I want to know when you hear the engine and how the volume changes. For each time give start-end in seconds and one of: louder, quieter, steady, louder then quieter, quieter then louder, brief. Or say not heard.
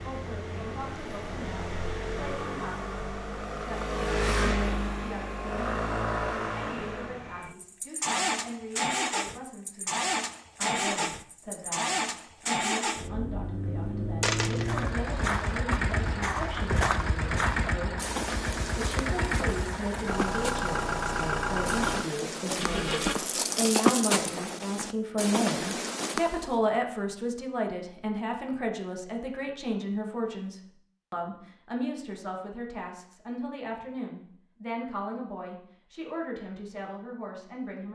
0.0-23.1 steady.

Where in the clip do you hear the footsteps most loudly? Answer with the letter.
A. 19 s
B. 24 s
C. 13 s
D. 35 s
B.